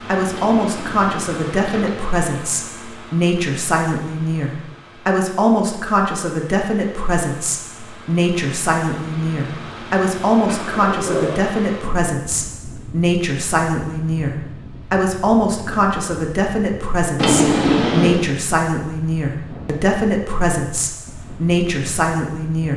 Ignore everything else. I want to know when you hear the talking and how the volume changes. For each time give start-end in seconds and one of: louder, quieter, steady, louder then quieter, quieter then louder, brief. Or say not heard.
0.1-22.7 steady.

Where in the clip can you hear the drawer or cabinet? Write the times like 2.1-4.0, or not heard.
0.3-2.1, 10.4-11.4, 17.1-18.2.